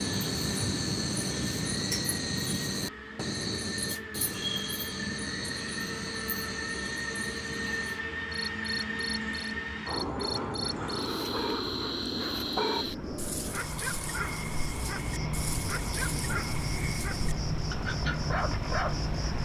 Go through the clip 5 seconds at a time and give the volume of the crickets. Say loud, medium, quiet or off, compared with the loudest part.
loud, medium, medium, loud.